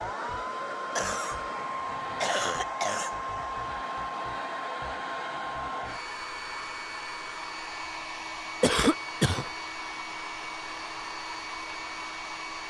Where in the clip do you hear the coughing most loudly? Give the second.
9 s.